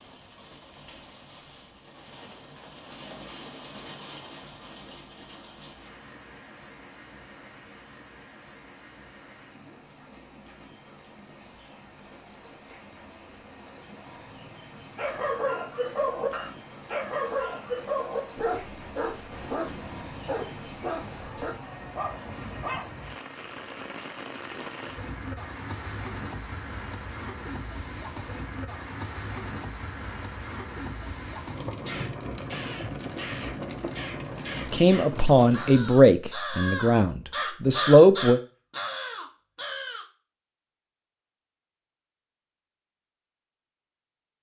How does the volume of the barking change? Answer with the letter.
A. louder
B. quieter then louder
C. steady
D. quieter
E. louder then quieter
D.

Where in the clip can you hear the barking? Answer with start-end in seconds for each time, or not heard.
14.9-22.9.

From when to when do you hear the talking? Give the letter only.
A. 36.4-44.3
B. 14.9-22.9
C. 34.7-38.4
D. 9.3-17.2
C.